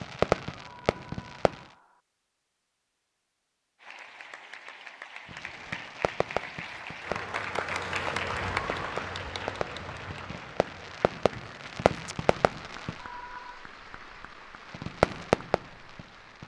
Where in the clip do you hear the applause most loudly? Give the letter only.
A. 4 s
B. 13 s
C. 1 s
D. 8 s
D.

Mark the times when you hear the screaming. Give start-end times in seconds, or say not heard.
0.6-2.0, 12.9-13.7.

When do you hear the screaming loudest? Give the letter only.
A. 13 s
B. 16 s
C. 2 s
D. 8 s
A.